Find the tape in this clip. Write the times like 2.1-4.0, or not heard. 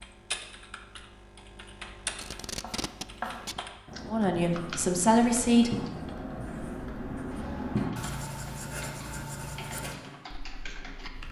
2.1-3.6.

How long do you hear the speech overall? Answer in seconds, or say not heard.
2 s.